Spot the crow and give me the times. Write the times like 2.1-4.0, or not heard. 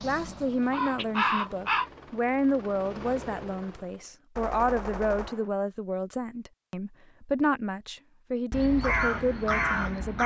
0.0-1.9, 8.5-10.2.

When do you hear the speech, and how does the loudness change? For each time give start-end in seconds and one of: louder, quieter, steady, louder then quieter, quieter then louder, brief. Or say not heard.
0.0-10.2 steady.